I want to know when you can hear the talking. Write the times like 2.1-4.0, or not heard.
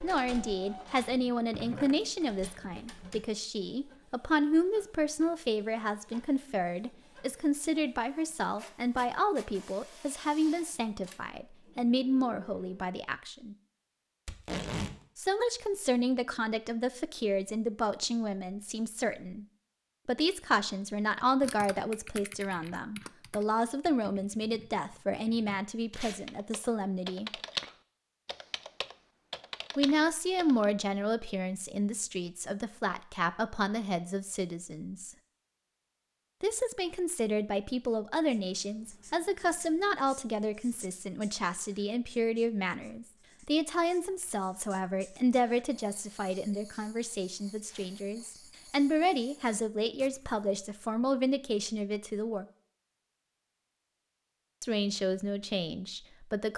0.0-13.6, 15.2-19.4, 20.1-27.3, 29.8-35.1, 36.4-52.5, 54.6-56.5.